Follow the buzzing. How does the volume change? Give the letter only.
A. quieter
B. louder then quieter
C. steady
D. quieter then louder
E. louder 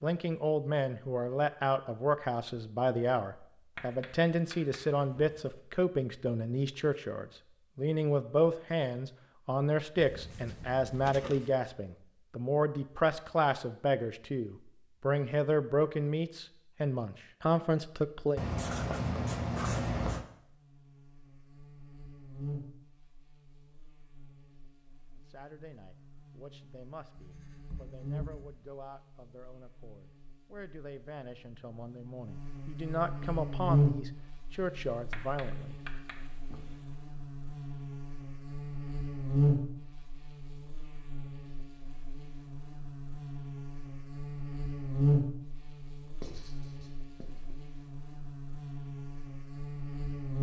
E.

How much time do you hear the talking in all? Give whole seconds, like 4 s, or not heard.
29 s.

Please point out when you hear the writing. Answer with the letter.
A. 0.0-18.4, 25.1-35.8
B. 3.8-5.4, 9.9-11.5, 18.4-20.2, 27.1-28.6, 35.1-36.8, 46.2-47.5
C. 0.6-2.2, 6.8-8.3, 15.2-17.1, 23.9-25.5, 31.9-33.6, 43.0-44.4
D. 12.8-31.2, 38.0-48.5
B.